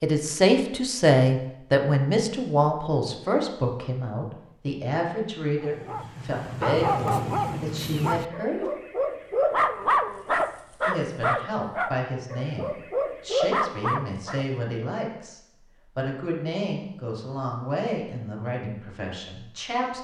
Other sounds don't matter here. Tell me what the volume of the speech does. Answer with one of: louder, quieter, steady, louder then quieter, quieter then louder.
quieter.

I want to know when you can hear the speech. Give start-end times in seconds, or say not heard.
0.0-8.7, 10.8-19.9.